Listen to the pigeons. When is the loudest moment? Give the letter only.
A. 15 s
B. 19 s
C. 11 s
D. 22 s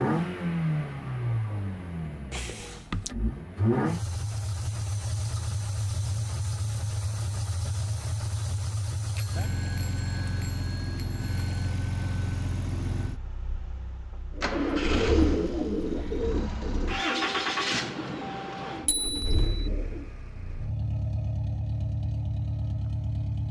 A.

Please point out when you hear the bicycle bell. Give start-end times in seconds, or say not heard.
2.3-3.1, 9.2-11.7, 18.9-19.4.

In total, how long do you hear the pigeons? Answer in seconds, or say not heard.
6 s.